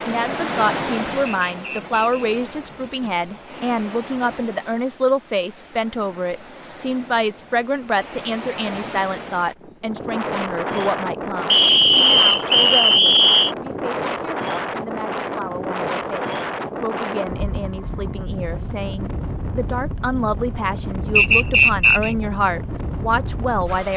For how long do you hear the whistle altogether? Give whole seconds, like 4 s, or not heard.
4 s.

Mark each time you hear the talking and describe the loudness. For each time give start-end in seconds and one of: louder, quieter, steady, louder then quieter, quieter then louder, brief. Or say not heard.
0.1-23.9 quieter then louder.